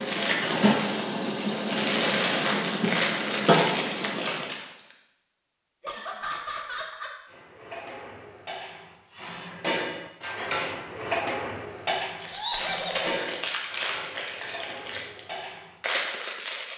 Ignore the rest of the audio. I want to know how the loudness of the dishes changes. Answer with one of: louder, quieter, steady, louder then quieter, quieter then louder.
louder then quieter.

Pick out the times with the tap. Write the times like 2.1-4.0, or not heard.
0.0-4.5.